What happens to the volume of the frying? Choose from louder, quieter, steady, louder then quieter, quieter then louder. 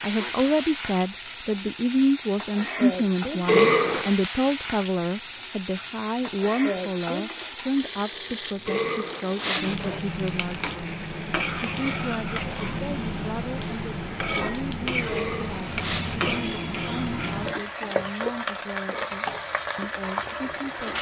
steady.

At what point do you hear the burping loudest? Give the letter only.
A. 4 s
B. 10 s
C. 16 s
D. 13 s
A.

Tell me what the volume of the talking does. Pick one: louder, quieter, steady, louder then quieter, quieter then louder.
quieter.